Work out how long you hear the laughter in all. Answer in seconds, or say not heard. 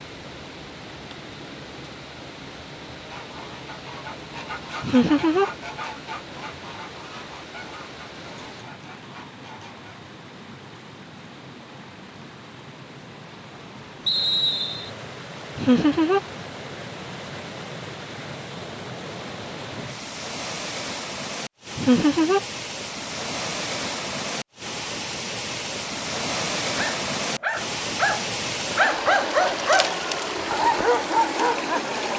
2 s.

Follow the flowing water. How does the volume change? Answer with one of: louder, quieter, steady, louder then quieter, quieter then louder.
louder.